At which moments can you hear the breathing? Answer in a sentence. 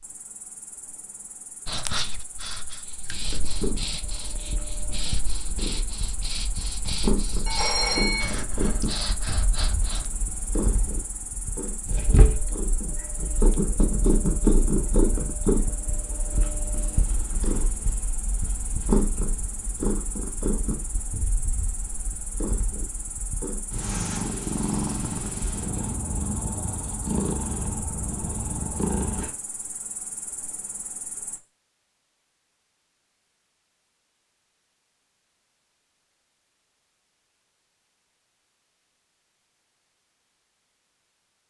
The breathing can be heard from 1.6 to 10.1 s.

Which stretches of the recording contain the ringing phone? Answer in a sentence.
You can hear the ringing phone from 7.5 to 8.3 s.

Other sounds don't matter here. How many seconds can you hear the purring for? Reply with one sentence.
You can hear the purring for 26 seconds altogether.